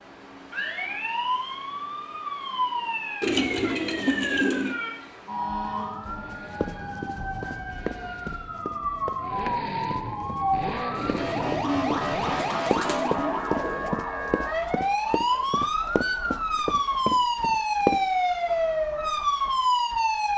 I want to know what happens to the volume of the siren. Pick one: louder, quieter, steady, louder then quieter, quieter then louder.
louder.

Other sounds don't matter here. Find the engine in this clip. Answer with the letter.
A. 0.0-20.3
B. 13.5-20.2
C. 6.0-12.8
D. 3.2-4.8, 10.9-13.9
C.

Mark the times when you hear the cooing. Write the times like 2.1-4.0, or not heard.
3.2-4.8, 10.9-13.9.